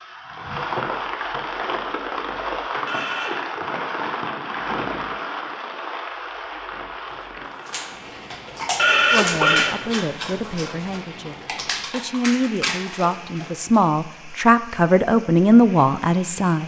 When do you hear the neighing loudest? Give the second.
9 s.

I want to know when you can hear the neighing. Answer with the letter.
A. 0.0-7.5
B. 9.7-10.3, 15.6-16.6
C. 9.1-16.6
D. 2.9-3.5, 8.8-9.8
D.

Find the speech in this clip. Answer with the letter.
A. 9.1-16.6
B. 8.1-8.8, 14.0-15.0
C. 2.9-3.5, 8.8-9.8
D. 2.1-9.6
A.